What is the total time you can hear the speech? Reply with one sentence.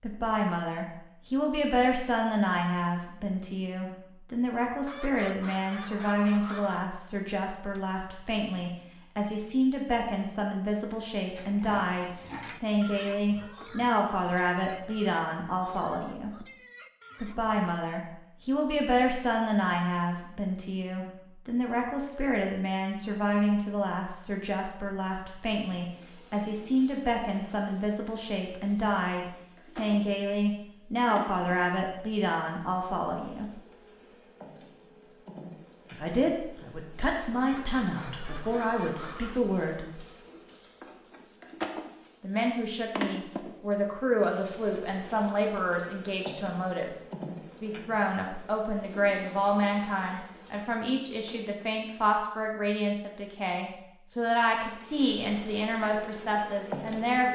The speech can be heard for 51 seconds in total.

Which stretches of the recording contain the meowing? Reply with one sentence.
You can't hear the meowing here.